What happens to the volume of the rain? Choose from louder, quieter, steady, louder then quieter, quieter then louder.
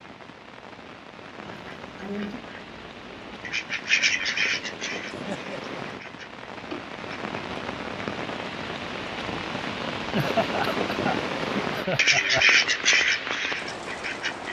louder.